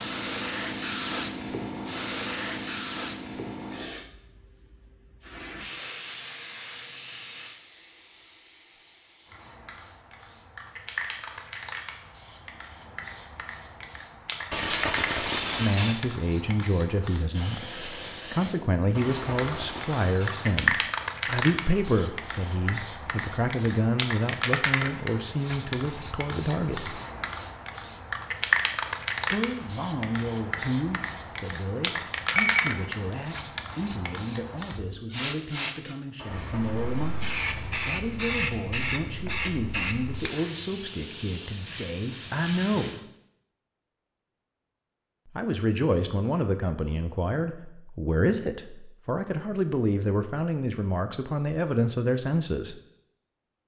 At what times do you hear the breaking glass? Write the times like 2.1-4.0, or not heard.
14.5-16.1, 18.9-20.6, 36.1-37.8.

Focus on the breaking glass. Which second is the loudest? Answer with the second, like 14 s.
15 s.